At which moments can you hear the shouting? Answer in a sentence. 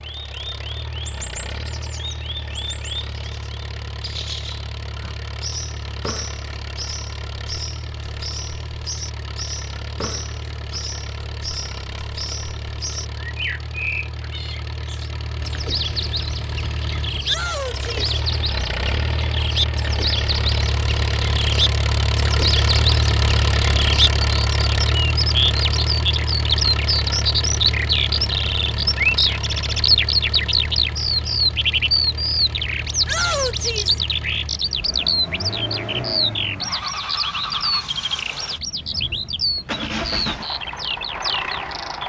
You can hear the shouting from 17.2 to 18.1 s and from 33.0 to 34.0 s.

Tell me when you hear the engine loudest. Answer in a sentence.
The loudest moment of the engine is at 23 seconds.